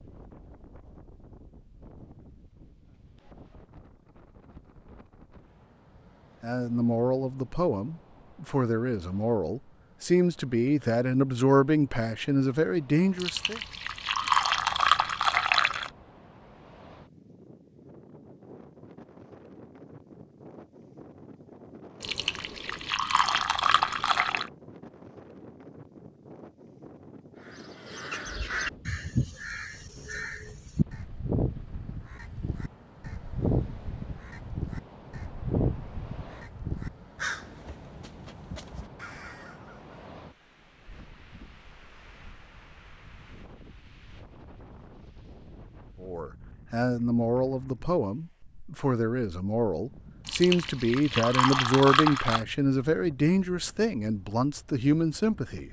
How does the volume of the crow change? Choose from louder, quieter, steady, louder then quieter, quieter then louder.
quieter.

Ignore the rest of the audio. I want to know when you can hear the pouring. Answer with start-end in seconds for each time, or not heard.
13.2-15.9, 22.0-24.5, 50.2-52.5.